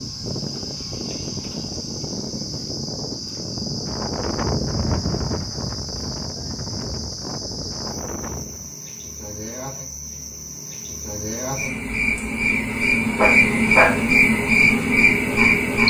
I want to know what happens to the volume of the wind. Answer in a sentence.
The loudness of the wind goes up, then down.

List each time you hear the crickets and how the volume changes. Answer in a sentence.
You can hear the crickets from 0.0 to 15.8 s, getting louder.